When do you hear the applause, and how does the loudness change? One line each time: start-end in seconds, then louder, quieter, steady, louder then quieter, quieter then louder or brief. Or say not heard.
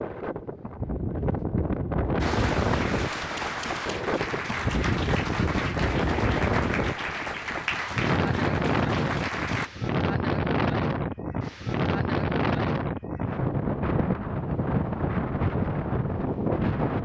2.2-9.7 steady.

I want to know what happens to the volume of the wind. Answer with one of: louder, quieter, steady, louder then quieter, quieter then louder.
steady.